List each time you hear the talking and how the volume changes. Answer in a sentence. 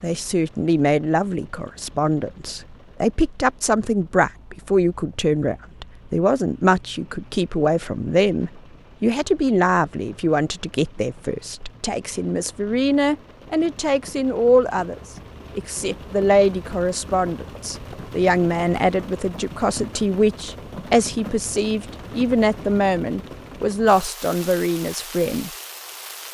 The talking can be heard from 0.0 to 25.5 s, at a steady volume.